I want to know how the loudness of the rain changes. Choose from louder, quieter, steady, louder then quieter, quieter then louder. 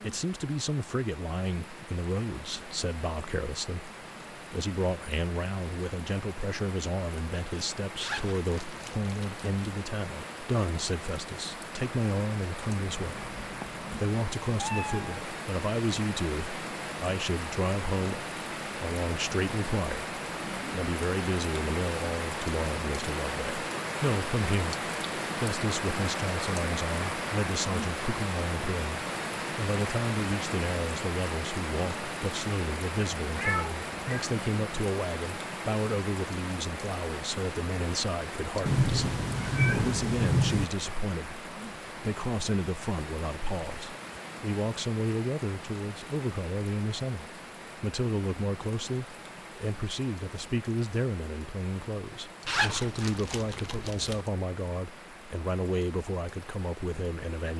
louder then quieter.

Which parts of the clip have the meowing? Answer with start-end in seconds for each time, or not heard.
13.0-15.2, 33.4-34.3, 38.6-40.6.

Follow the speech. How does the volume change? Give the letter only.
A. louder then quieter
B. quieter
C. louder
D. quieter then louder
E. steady
E.